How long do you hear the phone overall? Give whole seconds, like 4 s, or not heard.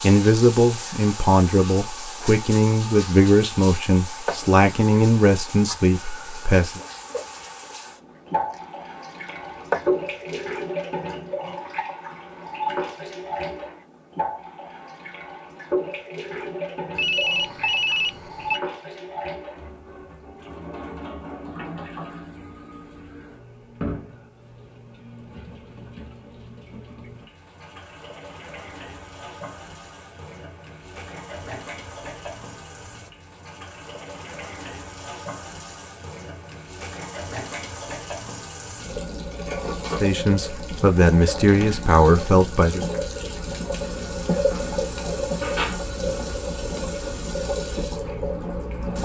2 s.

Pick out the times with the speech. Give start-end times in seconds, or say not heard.
0.0-6.8, 40.0-42.9.